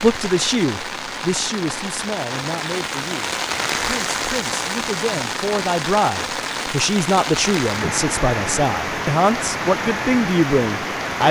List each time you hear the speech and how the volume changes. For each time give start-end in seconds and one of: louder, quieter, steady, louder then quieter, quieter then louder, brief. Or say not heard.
0.0-11.2 quieter then louder.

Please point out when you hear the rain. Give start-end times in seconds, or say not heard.
0.0-11.2.